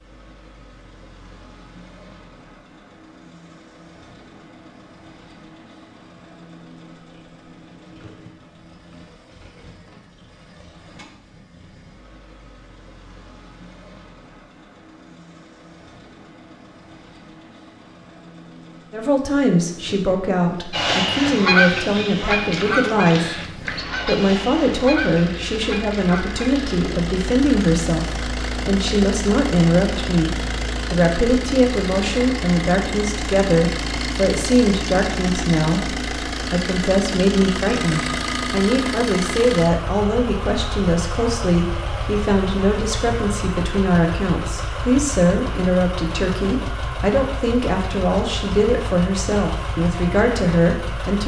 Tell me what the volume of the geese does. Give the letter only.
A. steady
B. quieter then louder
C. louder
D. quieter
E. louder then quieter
D.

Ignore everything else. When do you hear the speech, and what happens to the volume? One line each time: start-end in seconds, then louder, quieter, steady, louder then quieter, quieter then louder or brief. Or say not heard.
18.9-51.2 steady.